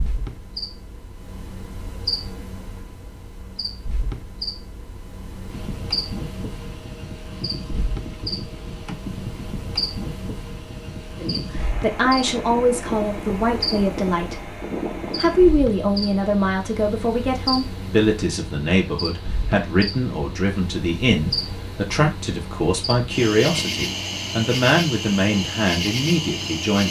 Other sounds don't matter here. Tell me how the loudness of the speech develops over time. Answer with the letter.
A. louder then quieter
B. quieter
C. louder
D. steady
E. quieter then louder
D.